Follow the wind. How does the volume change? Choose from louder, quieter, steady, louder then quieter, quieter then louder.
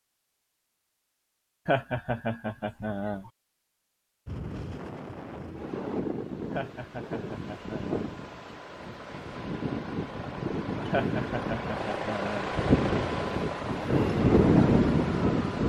louder.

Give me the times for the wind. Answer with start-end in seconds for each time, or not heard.
4.2-15.6.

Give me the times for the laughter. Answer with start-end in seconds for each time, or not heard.
1.6-3.3, 6.5-8.1, 10.9-12.6.